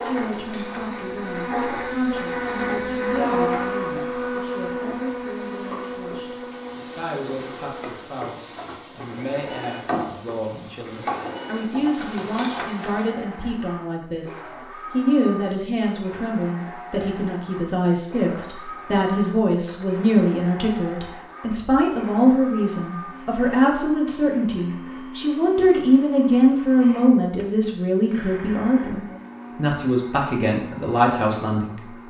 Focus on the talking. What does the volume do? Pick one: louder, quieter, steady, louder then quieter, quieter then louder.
louder.